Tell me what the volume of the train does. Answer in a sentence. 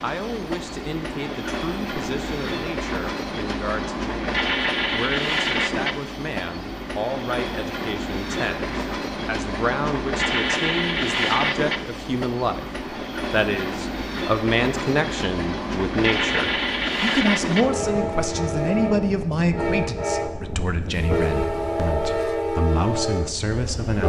The volume of the train stays about the same.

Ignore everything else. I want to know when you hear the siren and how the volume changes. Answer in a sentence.
You can't hear the siren here.